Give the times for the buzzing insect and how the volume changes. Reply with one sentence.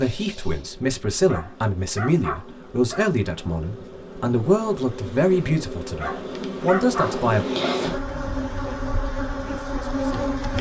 You can hear the buzzing insect from 0.0 to 10.5 s, getting louder.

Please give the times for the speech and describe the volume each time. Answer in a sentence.
You can hear the speech from 0.0 to 10.4 s, getting quieter.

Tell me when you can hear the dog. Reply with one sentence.
You can hear the dog from 1.2 to 3.1 s and from 6.0 to 7.8 s.